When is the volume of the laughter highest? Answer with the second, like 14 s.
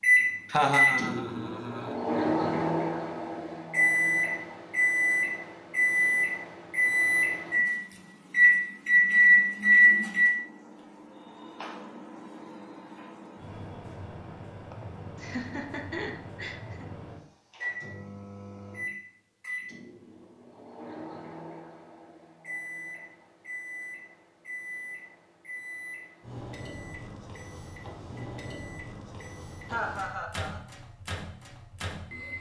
1 s.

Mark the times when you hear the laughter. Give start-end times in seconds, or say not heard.
0.5-1.9, 14.7-16.9, 29.6-30.6.